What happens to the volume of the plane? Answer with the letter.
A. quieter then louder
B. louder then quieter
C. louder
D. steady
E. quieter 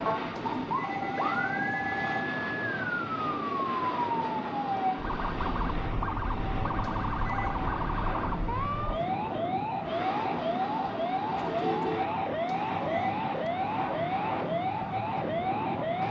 D.